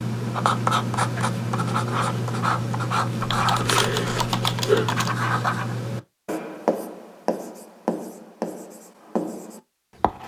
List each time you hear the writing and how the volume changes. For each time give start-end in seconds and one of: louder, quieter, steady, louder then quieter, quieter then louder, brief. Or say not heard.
0.0-10.2 quieter.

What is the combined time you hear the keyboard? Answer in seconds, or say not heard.
2 s.